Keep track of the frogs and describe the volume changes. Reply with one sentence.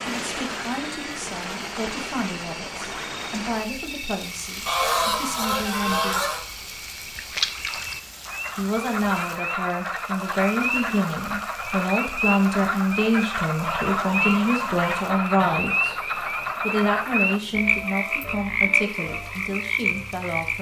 The loudness of the frogs goes up.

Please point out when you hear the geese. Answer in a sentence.
The geese can be heard from 4.7 to 6.4 s and from 13.6 to 15.7 s.